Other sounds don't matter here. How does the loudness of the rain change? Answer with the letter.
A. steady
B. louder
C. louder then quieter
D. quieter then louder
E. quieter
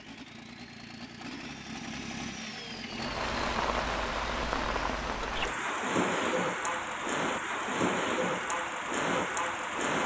A.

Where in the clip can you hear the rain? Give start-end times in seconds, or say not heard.
3.0-10.0.